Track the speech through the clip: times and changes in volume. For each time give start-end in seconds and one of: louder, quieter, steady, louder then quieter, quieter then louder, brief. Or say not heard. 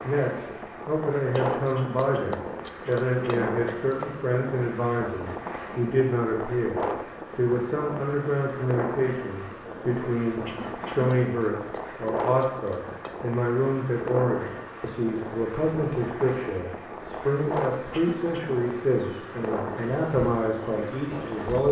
0.0-21.6 steady.